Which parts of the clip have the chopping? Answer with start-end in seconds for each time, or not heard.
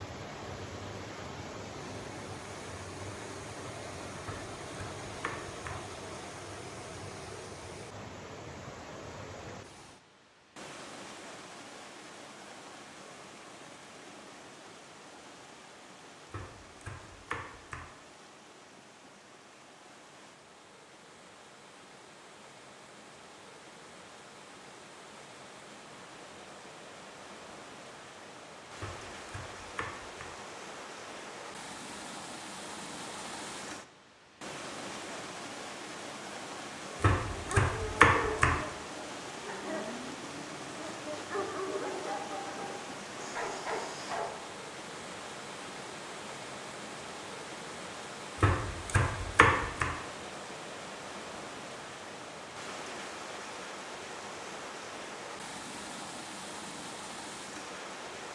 4.2-5.8, 16.3-17.9, 28.8-30.3, 37.0-38.5, 48.4-49.9.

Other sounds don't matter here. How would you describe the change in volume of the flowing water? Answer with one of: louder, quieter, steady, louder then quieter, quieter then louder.
quieter then louder.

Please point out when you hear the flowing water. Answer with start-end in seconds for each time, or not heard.
0.0-58.3.